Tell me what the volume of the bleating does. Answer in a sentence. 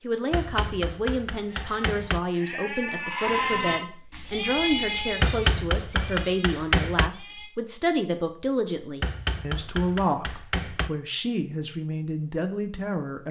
The loudness of the bleating goes up, then down.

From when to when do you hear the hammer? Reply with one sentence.
The hammer can be heard from 0.3 to 2.2 s, from 5.2 to 7.1 s and from 9.0 to 10.9 s.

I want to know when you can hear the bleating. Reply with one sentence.
You can hear the bleating from 1.4 to 7.5 s.